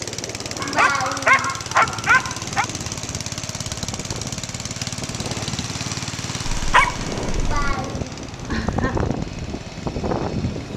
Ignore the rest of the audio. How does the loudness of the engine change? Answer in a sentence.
The volume of the engine goes down.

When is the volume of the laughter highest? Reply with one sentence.
The volume of the laughter peaks at 1 second.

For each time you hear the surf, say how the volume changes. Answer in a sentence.
The surf can be heard from 0.0 to 10.7 s, getting louder.